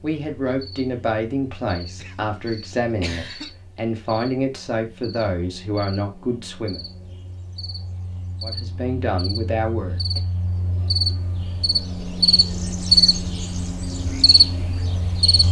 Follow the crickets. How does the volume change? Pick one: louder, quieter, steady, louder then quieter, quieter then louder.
louder.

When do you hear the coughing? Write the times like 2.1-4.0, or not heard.
1.9-3.5.